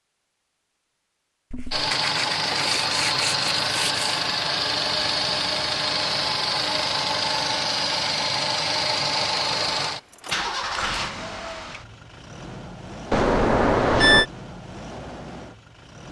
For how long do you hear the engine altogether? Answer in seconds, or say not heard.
14 s.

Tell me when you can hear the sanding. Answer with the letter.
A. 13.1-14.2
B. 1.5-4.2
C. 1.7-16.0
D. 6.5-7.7
B.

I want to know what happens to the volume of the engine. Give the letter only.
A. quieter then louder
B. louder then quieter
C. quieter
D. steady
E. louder
C.